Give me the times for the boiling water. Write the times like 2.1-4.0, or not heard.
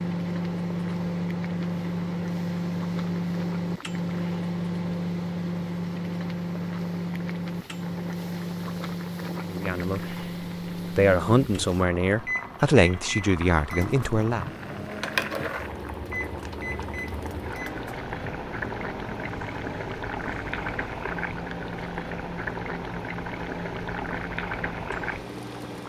0.0-25.8.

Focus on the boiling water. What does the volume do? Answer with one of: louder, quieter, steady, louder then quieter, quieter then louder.
louder.